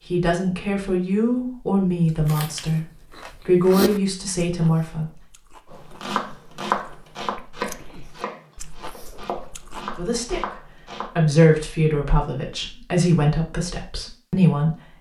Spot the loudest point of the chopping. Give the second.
7 s.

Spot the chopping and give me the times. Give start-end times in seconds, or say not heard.
5.7-11.1.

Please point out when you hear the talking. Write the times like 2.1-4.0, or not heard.
0.1-5.2, 9.9-14.9.